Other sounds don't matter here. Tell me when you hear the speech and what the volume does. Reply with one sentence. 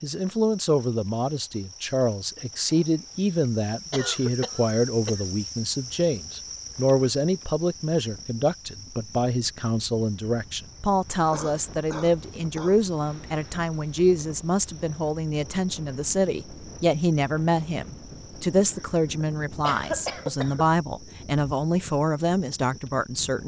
The speech can be heard from 0.0 to 23.4 s, at a steady volume.